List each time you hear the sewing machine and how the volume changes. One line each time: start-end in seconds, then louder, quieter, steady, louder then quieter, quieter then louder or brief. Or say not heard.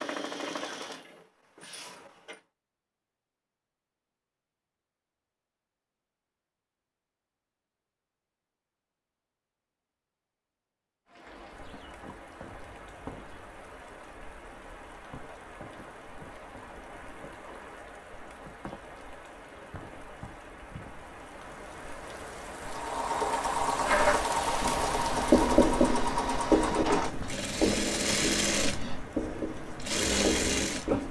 0.0-2.4 brief
22.6-31.0 steady.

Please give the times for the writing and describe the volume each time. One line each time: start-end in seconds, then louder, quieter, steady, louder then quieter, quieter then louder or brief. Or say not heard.
23.8-31.0 quieter.